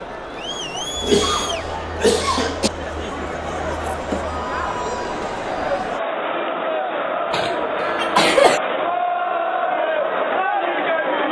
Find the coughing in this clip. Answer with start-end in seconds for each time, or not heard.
1.0-2.7, 7.3-8.6.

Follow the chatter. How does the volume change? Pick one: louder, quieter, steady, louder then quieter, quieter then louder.
louder.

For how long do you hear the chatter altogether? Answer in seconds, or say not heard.
11 s.